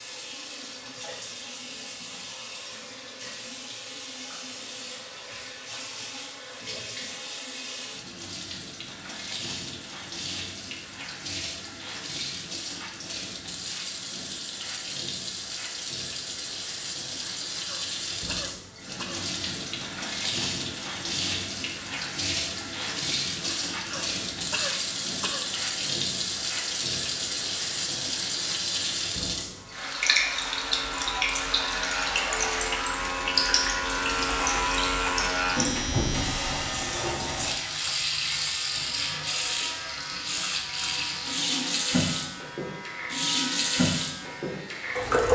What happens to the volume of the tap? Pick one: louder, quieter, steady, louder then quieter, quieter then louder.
louder.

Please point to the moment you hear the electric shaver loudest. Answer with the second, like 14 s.
35 s.